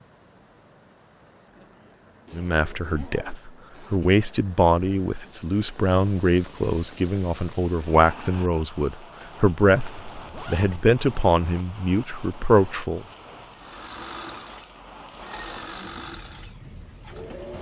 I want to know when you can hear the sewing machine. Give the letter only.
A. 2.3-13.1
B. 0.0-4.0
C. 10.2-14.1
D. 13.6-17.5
D.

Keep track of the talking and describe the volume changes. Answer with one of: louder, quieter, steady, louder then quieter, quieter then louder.
steady.